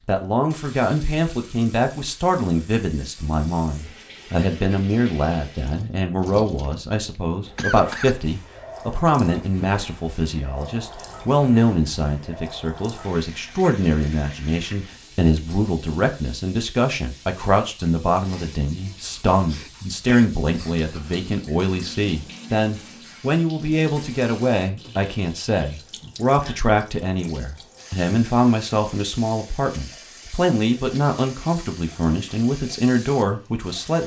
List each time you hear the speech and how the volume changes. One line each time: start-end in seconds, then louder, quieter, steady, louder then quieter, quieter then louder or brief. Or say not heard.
0.1-34.0 steady.